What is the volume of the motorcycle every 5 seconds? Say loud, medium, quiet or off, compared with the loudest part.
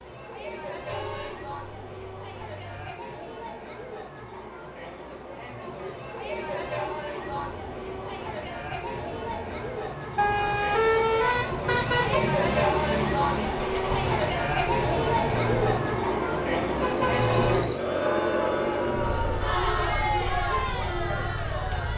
off, quiet, loud, loud, medium.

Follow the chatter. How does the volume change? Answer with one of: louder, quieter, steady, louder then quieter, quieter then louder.
louder.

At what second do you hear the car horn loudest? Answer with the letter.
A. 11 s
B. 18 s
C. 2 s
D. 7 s
A.